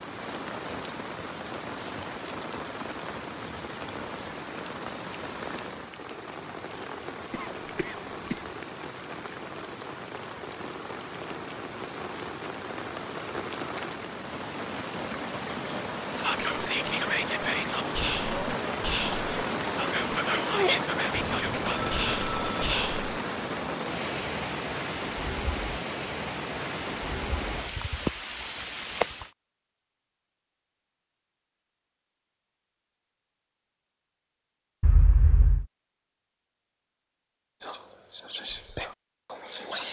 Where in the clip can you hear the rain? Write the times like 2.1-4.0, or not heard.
0.0-29.3.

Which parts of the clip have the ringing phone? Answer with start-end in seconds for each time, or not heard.
21.1-22.8.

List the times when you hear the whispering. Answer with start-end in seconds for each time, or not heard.
16.1-23.1, 37.6-39.8.